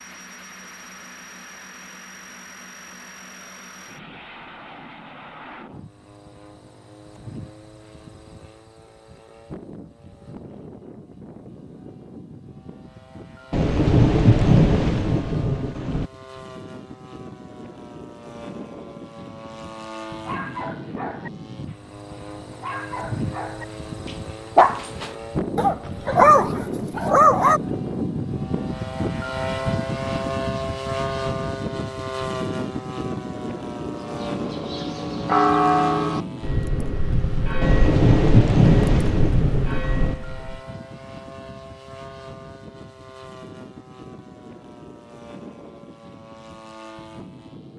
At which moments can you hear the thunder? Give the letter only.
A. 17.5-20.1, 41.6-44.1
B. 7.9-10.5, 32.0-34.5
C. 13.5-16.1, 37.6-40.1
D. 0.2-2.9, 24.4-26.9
C.